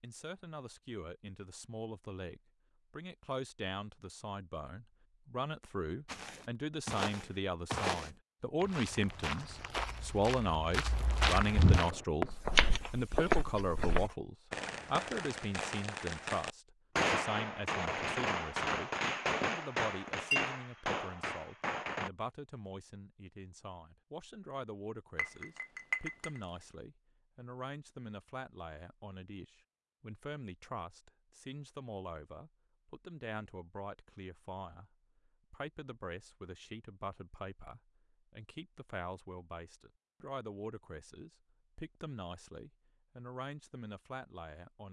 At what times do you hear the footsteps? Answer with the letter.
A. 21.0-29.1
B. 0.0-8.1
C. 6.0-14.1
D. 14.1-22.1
C.